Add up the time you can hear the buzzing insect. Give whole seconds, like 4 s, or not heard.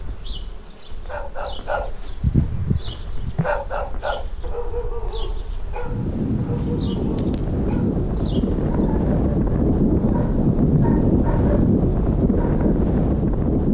9 s.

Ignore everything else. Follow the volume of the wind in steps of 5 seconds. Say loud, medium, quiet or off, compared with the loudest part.
quiet, loud, loud.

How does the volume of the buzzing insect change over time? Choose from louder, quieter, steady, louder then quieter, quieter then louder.
louder then quieter.